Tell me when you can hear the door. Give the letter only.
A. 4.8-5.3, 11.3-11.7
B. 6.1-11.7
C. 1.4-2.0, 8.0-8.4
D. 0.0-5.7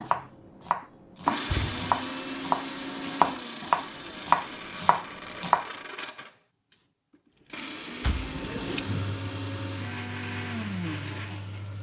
C.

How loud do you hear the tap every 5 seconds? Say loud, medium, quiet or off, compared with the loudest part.
off, loud, medium.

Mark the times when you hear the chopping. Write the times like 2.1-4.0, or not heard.
0.0-5.7.